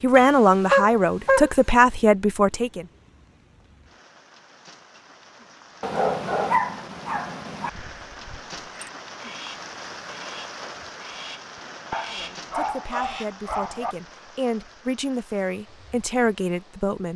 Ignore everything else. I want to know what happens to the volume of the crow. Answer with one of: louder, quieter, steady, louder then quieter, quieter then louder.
louder.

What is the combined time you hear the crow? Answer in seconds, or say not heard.
6 s.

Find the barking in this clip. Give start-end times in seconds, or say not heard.
0.1-1.5, 5.8-7.7, 11.9-13.9.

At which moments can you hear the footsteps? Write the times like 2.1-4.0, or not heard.
not heard.